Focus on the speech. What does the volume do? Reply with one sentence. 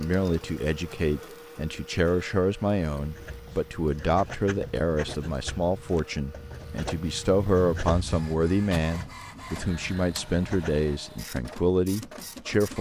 The loudness of the speech stays about the same.